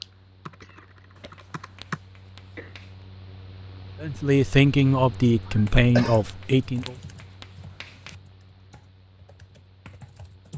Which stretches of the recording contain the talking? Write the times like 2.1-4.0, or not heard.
4.0-7.0.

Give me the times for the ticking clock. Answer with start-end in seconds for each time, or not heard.
not heard.